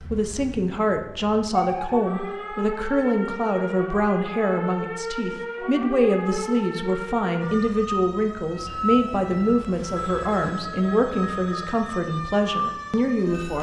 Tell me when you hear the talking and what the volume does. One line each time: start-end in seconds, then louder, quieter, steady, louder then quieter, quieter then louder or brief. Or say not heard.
0.0-13.5 steady.